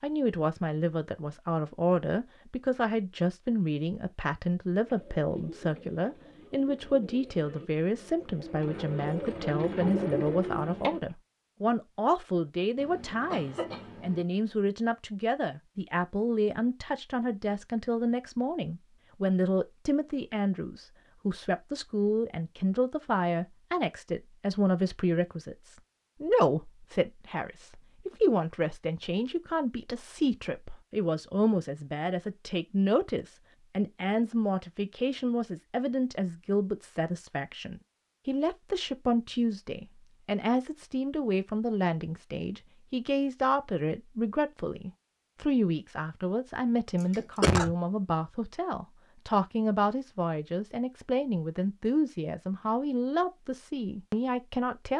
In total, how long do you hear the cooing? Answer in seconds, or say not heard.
6 s.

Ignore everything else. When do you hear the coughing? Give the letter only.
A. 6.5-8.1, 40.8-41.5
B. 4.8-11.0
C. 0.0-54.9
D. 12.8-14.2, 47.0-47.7
D.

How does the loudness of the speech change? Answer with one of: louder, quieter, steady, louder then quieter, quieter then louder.
steady.